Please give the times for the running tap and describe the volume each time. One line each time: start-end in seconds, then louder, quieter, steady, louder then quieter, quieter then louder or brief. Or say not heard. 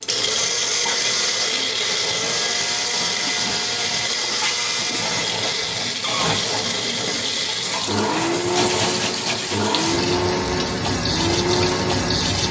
0.0-12.4 louder.